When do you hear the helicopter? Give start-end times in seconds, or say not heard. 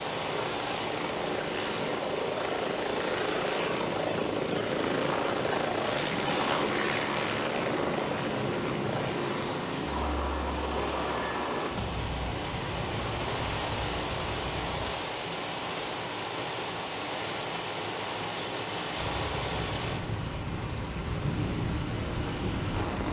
0.0-14.9, 18.9-23.0.